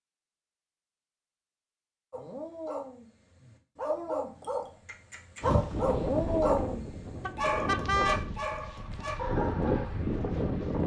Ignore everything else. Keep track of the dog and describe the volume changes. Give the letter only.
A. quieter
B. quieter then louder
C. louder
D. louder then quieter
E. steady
D.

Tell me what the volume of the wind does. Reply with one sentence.
The loudness of the wind goes down, then up.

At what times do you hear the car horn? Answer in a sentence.
You can hear the car horn from 7.2 to 8.2 s.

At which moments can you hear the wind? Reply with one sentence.
The wind can be heard from 5.4 to 10.8 s.